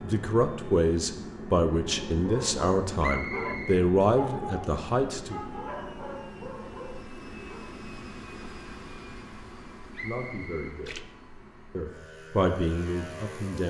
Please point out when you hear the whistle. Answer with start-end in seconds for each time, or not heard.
3.0-3.9, 9.9-10.8.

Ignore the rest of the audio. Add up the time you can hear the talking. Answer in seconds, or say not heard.
8 s.